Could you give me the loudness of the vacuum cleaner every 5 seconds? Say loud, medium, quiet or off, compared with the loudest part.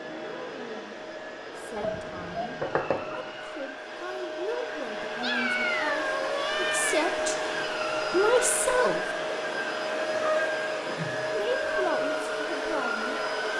medium, loud, loud.